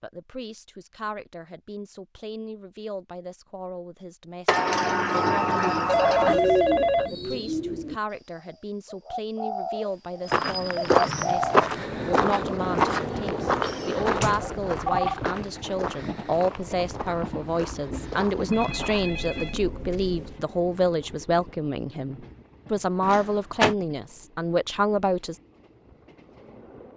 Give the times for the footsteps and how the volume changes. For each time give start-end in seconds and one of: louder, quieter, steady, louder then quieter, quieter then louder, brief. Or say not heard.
10.2-19.1 quieter.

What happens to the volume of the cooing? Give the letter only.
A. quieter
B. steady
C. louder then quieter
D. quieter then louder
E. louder
D.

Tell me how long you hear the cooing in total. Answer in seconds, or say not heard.
6 s.